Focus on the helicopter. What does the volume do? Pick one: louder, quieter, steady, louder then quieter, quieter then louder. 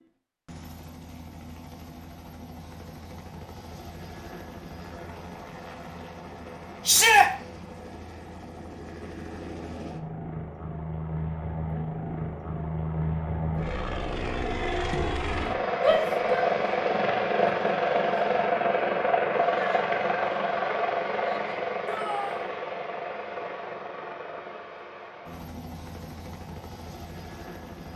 louder then quieter.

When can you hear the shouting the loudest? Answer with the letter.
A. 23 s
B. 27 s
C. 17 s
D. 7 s
D.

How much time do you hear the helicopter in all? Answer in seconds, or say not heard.
28 s.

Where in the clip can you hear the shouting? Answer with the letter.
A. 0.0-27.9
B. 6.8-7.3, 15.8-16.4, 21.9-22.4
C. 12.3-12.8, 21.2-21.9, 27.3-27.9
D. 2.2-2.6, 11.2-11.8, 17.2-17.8
B.